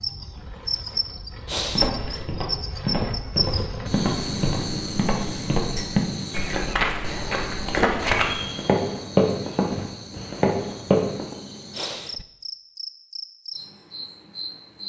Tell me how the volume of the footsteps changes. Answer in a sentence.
The loudness of the footsteps goes up.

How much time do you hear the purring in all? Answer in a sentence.
You can't hear the purring here.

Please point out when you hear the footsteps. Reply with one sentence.
You can hear the footsteps from 1.8 to 11.3 s.